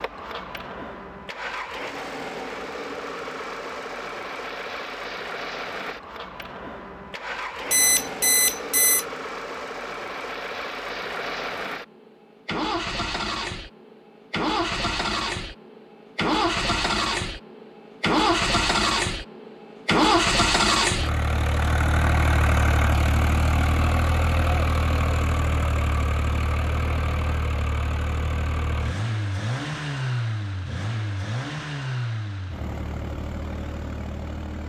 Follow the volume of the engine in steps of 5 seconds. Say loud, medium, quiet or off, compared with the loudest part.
medium, medium, medium, loud, loud, medium, medium.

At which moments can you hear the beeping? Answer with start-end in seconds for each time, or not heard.
7.7-9.1.